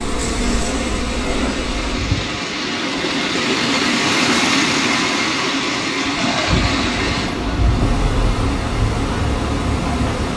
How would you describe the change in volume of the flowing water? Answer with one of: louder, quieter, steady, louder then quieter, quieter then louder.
louder then quieter.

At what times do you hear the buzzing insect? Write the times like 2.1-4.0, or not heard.
0.0-2.5, 6.3-10.3.